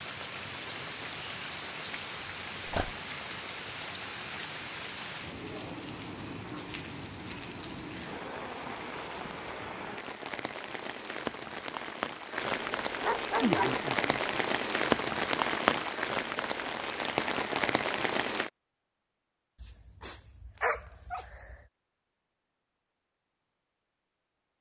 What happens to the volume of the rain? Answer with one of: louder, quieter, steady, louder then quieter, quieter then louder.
louder.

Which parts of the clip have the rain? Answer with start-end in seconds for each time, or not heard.
0.0-18.5.